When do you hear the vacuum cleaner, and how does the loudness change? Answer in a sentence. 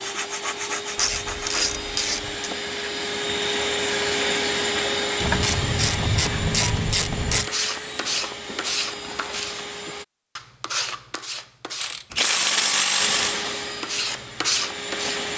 The vacuum cleaner can be heard from 0.0 to 10.1 s, getting louder then quieter; and briefly from 12.9 to 15.3 s.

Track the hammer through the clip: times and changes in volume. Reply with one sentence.
You can't hear the hammer here.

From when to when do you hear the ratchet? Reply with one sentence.
You can hear the ratchet from 0.9 to 2.5 s, from 5.2 to 7.5 s and from 11.8 to 13.4 s.